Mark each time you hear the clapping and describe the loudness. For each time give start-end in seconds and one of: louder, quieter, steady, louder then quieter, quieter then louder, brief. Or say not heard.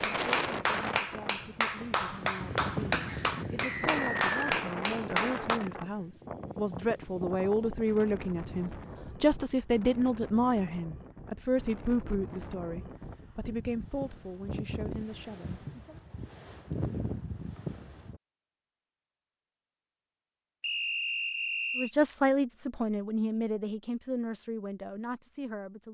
0.0-5.6 steady.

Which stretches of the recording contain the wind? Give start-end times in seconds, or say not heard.
0.0-18.2.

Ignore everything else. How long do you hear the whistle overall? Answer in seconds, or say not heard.
2 s.